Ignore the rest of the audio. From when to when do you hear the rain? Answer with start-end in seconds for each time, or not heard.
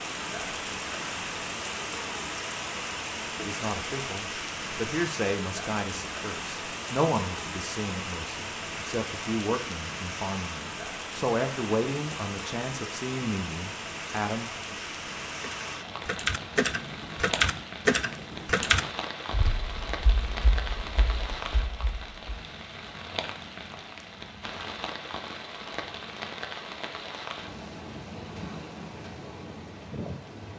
0.0-30.5.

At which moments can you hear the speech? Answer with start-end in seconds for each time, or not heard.
3.4-14.8.